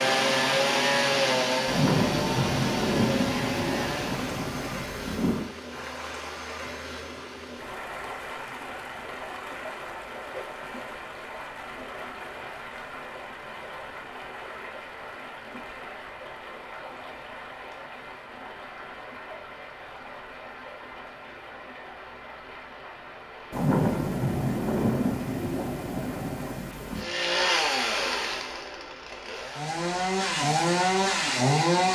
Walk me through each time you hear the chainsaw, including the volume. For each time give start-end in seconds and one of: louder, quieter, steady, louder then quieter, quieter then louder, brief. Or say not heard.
0.0-4.3 quieter
26.9-31.8 quieter then louder.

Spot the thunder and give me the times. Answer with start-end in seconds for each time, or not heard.
1.6-5.5, 23.5-27.1.